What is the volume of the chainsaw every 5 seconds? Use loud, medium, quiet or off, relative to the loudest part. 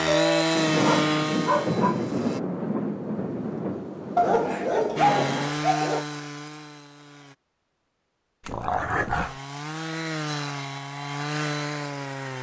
loud, medium, medium.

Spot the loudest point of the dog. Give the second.
5 s.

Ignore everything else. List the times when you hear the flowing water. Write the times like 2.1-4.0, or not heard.
not heard.